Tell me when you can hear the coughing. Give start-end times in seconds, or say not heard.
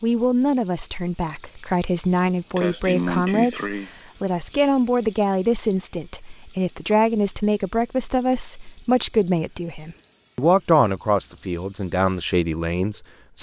2.5-3.9.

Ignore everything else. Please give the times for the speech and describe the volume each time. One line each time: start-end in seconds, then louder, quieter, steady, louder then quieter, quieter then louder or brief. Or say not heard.
0.0-13.3 steady.